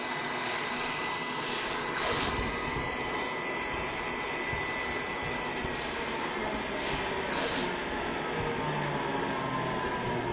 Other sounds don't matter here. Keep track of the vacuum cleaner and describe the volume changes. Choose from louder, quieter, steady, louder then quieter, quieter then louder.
steady.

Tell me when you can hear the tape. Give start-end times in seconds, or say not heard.
0.3-2.3, 5.7-7.7.